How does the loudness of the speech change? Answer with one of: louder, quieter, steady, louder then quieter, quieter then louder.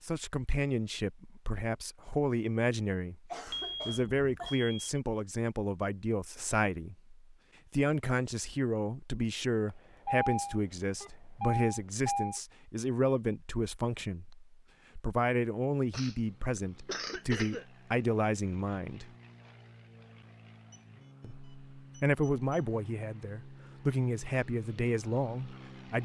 steady.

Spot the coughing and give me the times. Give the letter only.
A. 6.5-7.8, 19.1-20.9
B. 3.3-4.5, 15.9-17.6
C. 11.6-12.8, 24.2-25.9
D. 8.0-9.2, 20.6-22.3
B.